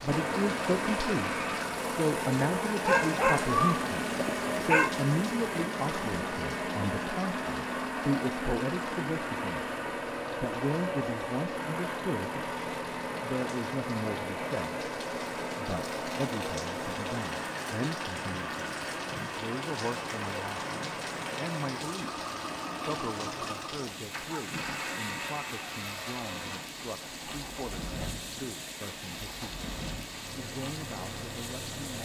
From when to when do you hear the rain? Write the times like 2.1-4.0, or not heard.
0.0-31.9.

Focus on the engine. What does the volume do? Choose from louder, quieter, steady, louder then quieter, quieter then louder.
quieter.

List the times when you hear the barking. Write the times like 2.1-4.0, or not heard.
2.9-5.0.